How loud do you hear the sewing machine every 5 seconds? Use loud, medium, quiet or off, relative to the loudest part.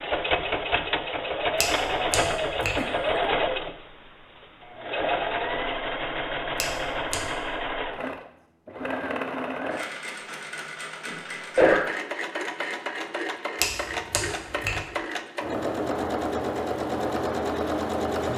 loud, loud, medium, loud.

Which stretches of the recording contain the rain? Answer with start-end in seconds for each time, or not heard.
not heard.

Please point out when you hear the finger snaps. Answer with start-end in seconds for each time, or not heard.
1.6-2.9, 6.6-7.5, 13.6-14.8.